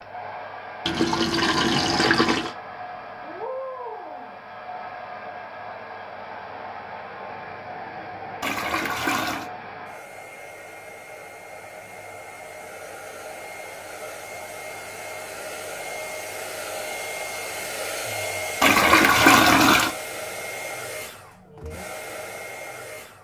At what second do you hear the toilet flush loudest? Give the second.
19 s.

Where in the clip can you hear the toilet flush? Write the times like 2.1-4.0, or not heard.
0.8-2.5, 8.4-9.5, 18.6-19.9.